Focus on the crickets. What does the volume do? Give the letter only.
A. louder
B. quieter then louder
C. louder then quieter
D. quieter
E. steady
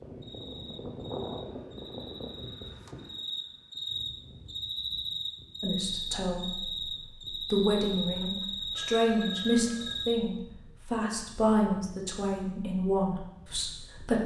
A.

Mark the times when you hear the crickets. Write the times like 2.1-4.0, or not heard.
0.2-10.2.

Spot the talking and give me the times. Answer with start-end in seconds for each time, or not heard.
5.6-14.2.